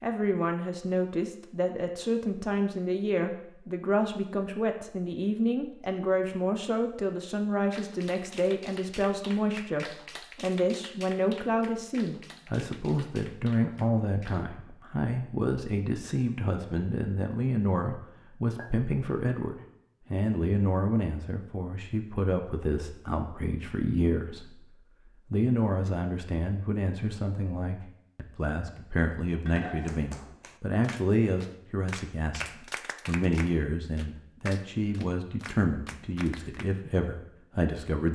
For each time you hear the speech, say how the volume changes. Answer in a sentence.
You can hear the speech from 0.0 to 38.1 s, at a steady volume.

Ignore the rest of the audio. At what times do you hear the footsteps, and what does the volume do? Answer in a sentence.
The footsteps can't be heard in this clip.